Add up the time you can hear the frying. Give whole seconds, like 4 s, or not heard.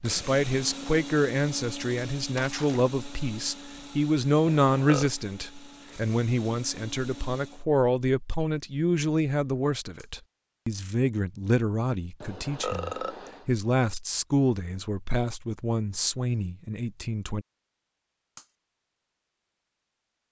not heard.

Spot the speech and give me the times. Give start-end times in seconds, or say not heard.
0.0-17.4.